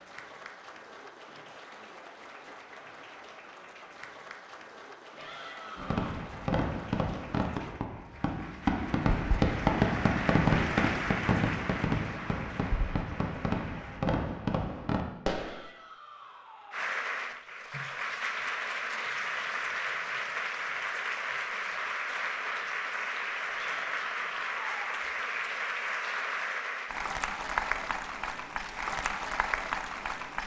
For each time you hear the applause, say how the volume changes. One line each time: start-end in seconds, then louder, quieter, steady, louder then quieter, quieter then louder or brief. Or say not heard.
0.0-14.1 louder
16.7-30.4 steady.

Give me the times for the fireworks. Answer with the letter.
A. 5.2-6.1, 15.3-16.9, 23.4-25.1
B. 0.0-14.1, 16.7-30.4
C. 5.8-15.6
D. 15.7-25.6
C.